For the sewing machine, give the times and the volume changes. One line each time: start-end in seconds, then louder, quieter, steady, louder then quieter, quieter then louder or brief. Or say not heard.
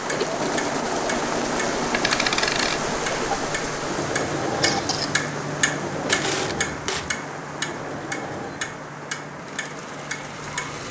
0.0-10.8 quieter.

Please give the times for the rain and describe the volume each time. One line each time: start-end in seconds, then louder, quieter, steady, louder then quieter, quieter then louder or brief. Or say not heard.
0.0-10.8 quieter.